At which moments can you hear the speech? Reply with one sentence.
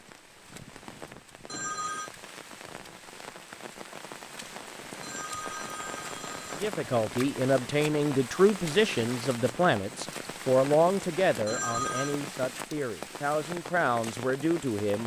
The speech can be heard from 6.6 to 15.0 s.